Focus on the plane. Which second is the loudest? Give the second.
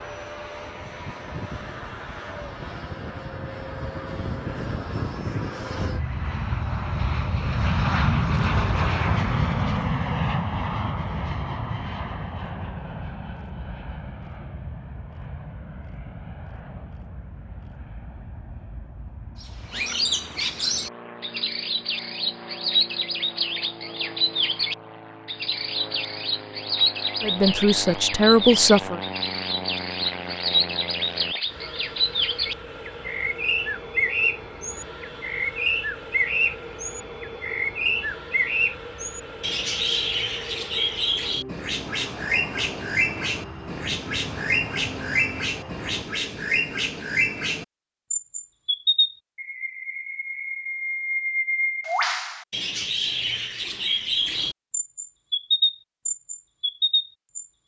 8 s.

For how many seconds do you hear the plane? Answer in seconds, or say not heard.
46 s.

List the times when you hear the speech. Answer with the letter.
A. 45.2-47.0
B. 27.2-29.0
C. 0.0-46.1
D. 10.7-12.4
B.